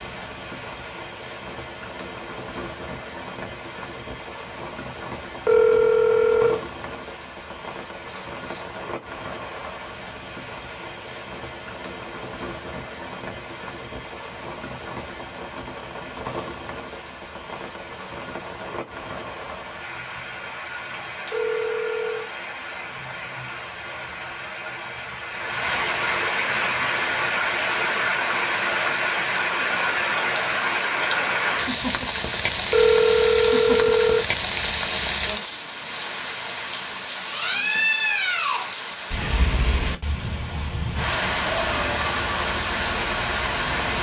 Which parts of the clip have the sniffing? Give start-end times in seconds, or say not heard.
8.1-8.7.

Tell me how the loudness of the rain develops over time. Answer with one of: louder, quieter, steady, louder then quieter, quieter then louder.
louder.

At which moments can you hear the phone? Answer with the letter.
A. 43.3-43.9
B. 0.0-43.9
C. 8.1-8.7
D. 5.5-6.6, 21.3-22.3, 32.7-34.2
D.